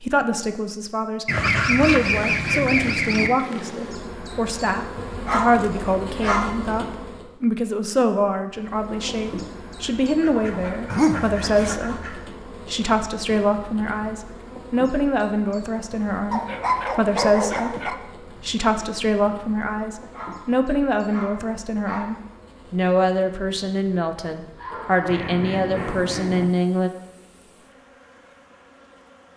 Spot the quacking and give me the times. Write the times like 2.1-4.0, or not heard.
1.2-3.3, 10.2-12.2, 25.1-26.4.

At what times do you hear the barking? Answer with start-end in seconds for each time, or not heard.
1.3-3.1, 5.2-6.5, 10.9-11.8, 16.3-18.0, 20.1-22.2, 24.6-26.1.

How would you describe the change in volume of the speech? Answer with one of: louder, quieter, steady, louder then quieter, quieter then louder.
steady.